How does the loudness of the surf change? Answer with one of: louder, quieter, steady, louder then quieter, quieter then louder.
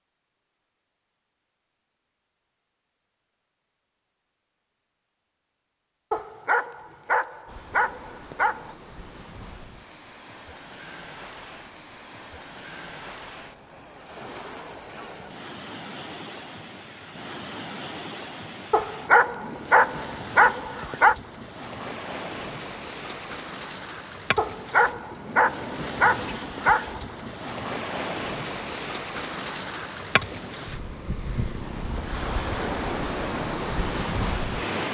louder.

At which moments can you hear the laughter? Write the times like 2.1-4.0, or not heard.
not heard.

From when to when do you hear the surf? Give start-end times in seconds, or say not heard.
7.5-34.8.